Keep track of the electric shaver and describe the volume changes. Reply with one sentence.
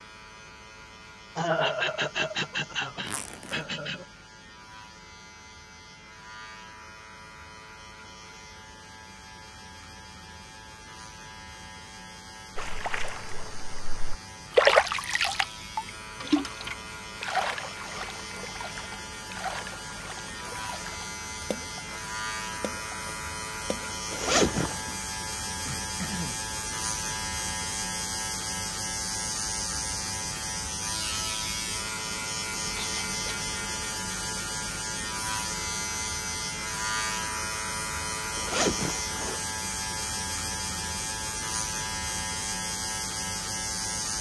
The volume of the electric shaver goes up.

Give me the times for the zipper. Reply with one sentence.
The zipper can be heard from 3.0 to 3.6 s, from 24.1 to 24.9 s and from 38.4 to 39.4 s.